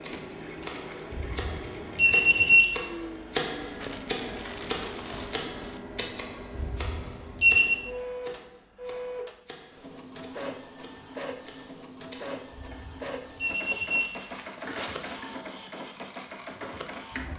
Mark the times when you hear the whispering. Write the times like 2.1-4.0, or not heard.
not heard.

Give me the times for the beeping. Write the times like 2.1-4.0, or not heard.
1.1-2.7, 6.5-7.8, 12.5-14.1.